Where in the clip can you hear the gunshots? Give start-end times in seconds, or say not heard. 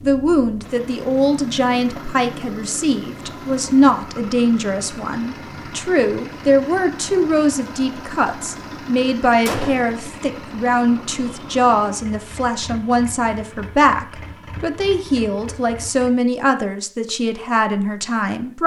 9.4-9.9.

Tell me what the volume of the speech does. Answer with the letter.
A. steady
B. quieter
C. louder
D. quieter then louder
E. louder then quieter
A.